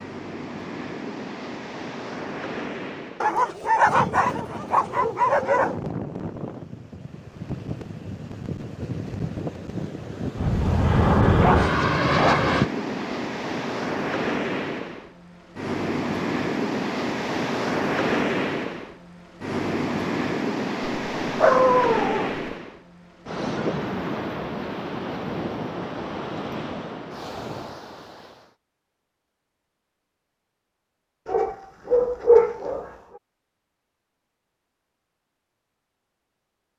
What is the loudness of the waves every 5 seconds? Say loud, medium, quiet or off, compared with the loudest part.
medium, medium, loud, loud, loud, medium, off, off.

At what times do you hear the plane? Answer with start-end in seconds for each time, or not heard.
10.3-12.7.